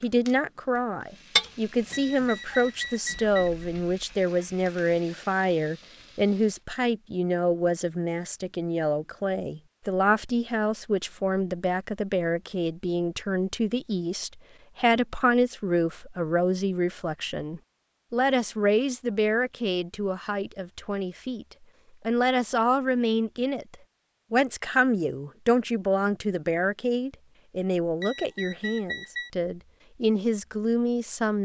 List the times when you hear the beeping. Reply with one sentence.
You can hear the beeping from 1.8 to 3.6 s and from 27.8 to 29.3 s.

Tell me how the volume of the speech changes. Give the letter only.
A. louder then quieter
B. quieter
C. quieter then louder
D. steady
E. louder
D.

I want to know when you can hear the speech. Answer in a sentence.
You can hear the speech from 0.0 to 21.4 s and from 22.1 to 31.4 s.